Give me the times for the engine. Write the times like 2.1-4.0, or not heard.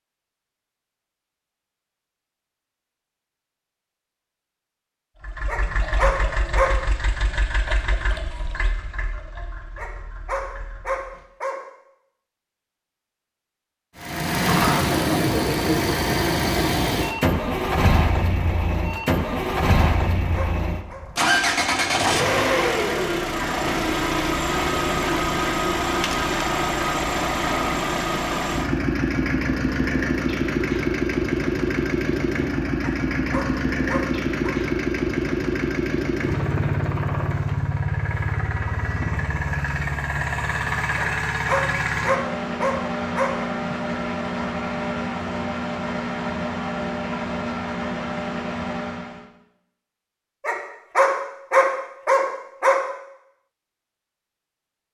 5.2-11.2, 13.9-49.2.